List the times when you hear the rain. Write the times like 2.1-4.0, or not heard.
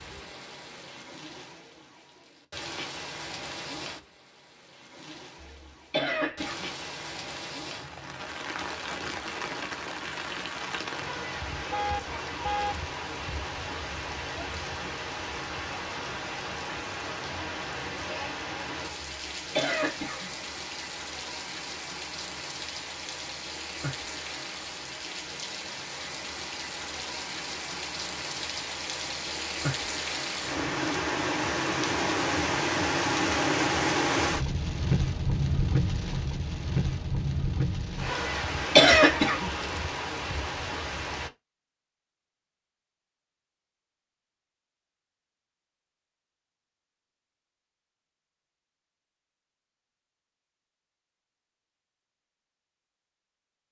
0.0-41.3.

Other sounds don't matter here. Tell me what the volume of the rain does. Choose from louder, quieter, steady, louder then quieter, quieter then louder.
louder.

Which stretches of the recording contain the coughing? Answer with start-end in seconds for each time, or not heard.
5.9-6.7, 19.6-20.2, 38.8-39.5.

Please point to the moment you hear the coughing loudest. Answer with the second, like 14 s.
39 s.